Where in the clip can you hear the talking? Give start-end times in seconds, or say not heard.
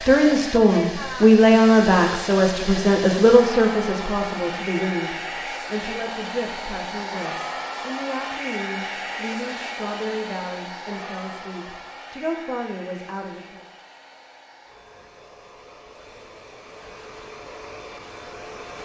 0.0-13.7.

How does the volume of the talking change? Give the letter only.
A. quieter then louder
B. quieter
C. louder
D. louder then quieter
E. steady
B.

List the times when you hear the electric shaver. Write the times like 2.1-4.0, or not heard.
not heard.